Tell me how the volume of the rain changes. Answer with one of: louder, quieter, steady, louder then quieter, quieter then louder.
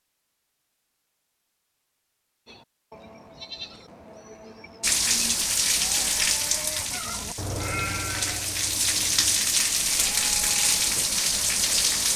quieter then louder.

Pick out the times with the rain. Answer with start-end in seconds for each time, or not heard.
4.8-12.1.